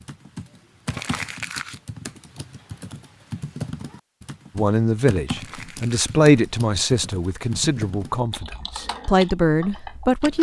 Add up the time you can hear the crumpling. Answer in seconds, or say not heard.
2 s.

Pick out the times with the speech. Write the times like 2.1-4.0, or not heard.
4.5-10.3.